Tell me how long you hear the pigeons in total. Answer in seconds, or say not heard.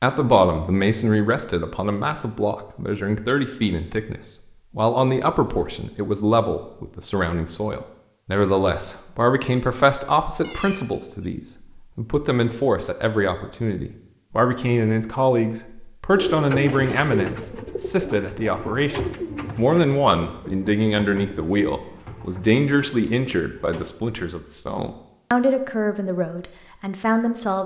8 s.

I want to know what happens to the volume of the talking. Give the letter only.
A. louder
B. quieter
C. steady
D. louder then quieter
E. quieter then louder
C.